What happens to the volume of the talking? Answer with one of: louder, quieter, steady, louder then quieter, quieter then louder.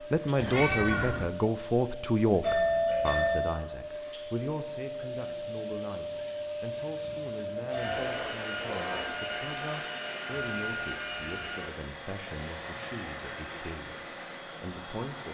quieter.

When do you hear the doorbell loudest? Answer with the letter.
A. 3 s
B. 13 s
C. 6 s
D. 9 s
A.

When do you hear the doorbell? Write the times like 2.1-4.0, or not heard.
2.4-3.5, 7.7-8.3.